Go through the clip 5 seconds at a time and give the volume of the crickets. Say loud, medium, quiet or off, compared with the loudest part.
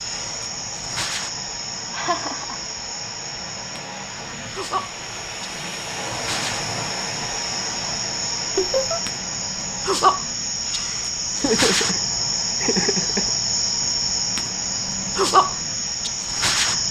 medium, medium, loud, loud.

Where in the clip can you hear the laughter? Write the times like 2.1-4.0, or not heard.
1.9-2.6, 8.6-9.0, 11.3-13.3.